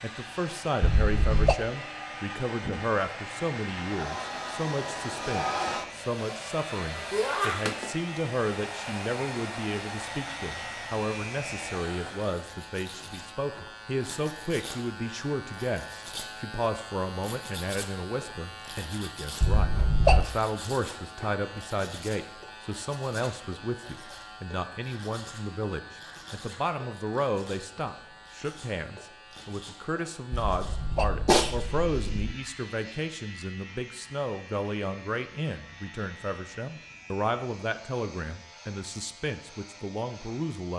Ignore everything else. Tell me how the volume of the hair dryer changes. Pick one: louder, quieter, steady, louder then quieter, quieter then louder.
louder then quieter.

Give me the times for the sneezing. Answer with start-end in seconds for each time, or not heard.
0.8-1.6, 19.4-20.3, 30.3-32.4.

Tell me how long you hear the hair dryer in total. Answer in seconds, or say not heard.
12 s.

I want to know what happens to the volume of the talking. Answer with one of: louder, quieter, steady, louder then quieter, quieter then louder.
steady.